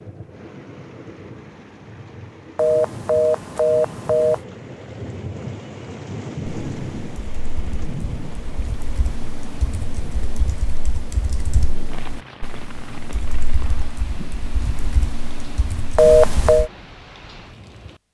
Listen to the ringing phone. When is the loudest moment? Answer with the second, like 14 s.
16 s.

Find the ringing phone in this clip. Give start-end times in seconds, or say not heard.
2.5-4.4, 15.9-16.7.